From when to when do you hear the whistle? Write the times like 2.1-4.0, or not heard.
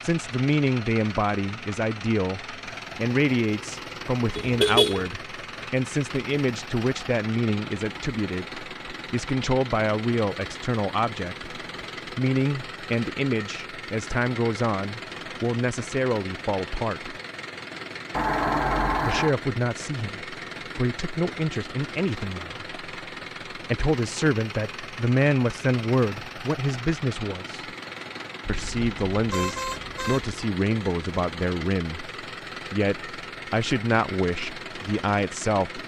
not heard.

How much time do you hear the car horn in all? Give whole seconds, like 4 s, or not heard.
4 s.